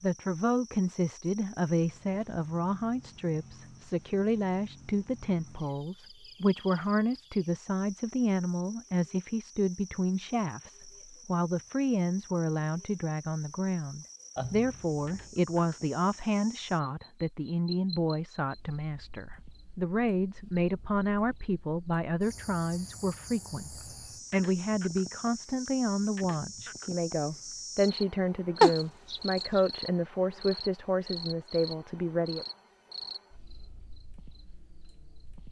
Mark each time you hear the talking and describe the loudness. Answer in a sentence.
The talking can be heard from 0.0 to 32.5 s, at a steady volume.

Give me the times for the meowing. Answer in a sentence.
The meowing can be heard from 14.3 to 15.3 s and from 28.6 to 29.6 s.